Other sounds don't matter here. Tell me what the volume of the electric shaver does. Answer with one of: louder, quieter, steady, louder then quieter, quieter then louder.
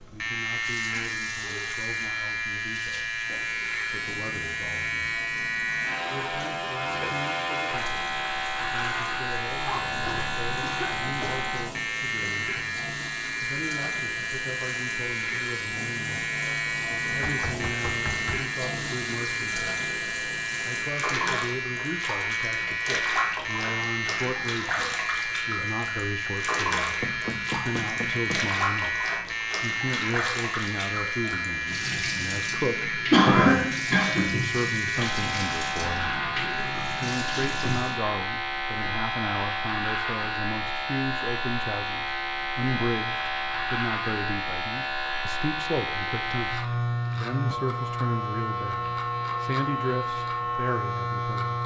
steady.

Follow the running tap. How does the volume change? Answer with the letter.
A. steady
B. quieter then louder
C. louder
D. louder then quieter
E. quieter
C.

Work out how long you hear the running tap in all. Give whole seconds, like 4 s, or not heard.
38 s.